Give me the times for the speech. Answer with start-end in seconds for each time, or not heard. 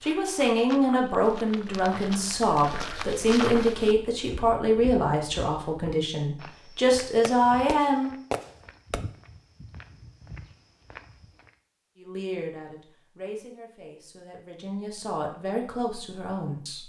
0.0-8.1, 11.9-16.8.